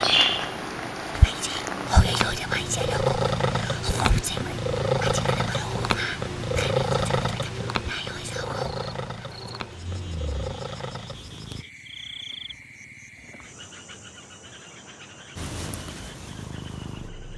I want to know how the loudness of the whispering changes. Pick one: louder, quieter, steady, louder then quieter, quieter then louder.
quieter.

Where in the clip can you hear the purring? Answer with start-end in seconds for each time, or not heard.
0.0-11.7, 15.3-17.3.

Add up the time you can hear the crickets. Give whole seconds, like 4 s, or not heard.
9 s.